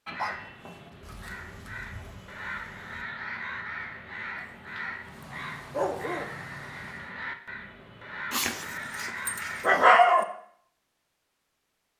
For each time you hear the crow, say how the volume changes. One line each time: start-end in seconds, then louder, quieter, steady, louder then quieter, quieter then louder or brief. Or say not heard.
0.1-9.9 louder.